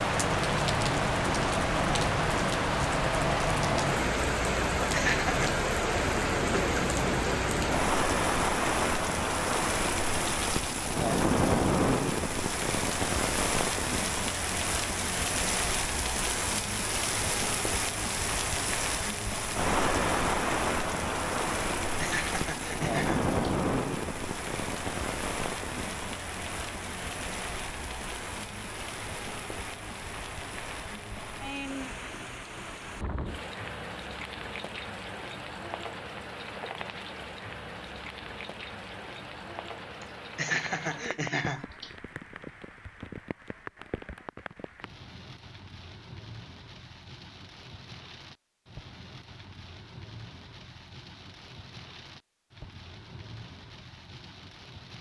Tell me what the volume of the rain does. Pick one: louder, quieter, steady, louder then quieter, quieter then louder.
quieter.